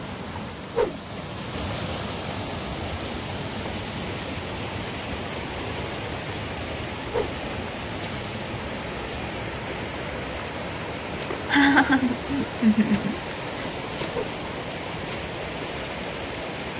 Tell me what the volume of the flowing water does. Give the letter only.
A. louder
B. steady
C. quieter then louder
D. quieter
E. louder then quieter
B.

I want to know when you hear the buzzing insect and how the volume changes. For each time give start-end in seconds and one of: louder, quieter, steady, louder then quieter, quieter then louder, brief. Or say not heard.
not heard.